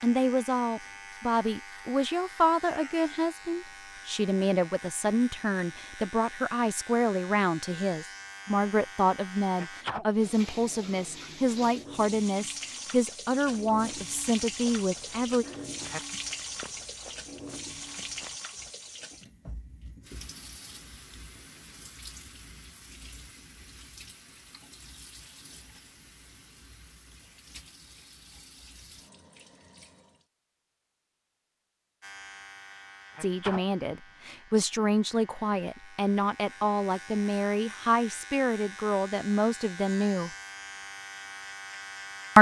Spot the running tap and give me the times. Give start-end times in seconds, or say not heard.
10.1-30.2.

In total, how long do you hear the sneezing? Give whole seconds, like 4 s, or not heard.
2 s.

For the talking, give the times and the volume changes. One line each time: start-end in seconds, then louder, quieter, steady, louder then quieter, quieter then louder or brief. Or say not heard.
0.0-15.4 steady
33.2-40.3 steady.